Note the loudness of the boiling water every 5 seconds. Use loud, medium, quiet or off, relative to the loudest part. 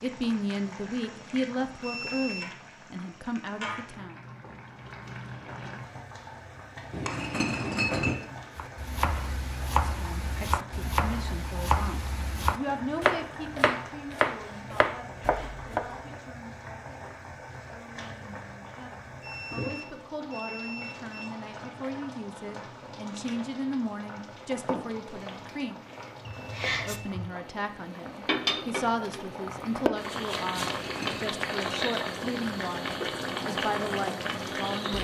medium, medium, medium, medium, medium, loud, loud.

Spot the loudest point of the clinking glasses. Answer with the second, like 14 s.
8 s.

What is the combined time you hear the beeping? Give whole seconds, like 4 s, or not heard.
4 s.